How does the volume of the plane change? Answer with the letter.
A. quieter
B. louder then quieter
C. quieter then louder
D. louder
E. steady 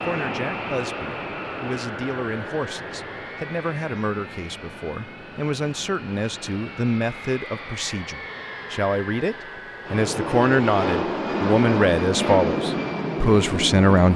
C.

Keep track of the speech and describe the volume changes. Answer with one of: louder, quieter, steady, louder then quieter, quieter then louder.
louder.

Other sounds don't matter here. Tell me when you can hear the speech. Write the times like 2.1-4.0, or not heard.
0.0-14.1.